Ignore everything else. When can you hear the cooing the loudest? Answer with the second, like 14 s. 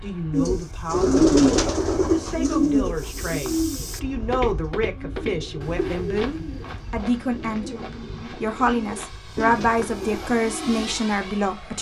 1 s.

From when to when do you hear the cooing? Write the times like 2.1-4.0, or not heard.
0.3-10.8.